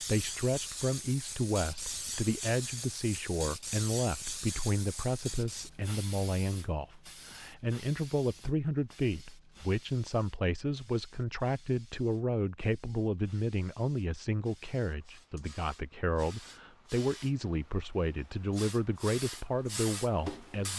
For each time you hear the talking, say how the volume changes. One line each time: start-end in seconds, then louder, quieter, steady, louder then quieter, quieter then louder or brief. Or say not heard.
0.0-20.7 steady.